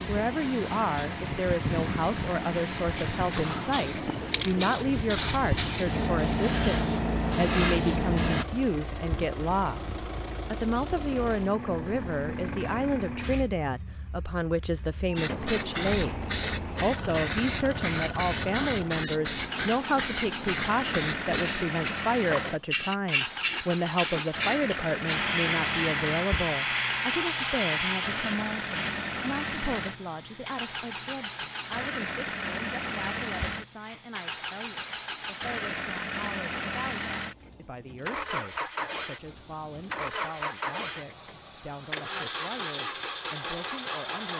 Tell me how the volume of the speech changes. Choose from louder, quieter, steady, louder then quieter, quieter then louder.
quieter.